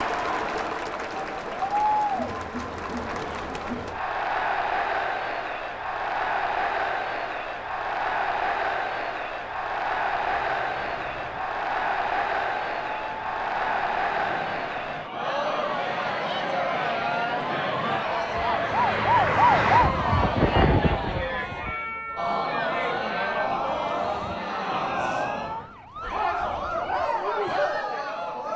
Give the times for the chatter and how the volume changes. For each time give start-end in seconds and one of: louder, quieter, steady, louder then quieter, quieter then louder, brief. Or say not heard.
0.0-28.5 steady.